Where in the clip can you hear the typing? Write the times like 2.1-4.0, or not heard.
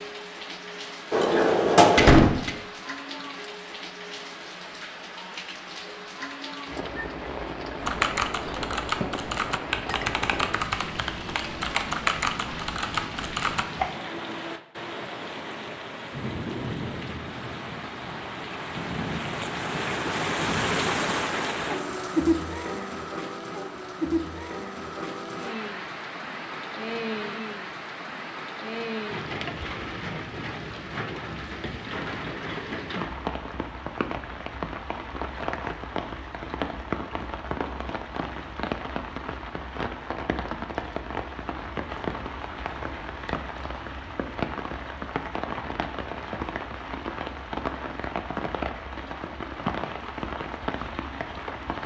7.8-13.9.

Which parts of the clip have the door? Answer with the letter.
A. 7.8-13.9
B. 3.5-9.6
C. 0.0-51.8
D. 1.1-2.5
D.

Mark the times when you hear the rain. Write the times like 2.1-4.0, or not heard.
0.0-51.8.